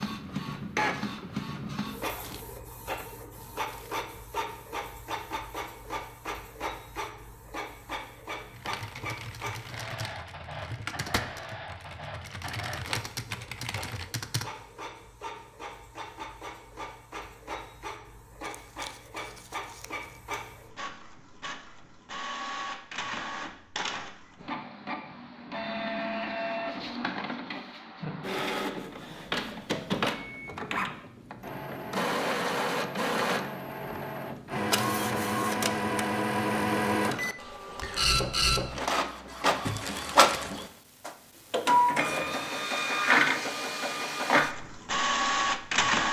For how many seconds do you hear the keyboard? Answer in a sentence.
The keyboard can be heard for 6 seconds in total.